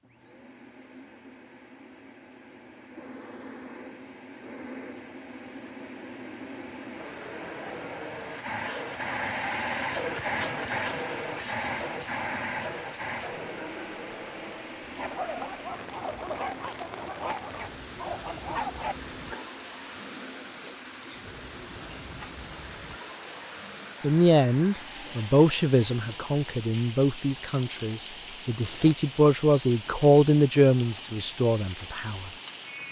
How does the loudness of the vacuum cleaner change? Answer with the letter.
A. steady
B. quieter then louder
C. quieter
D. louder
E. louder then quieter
E.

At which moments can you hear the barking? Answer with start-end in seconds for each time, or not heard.
14.8-19.6.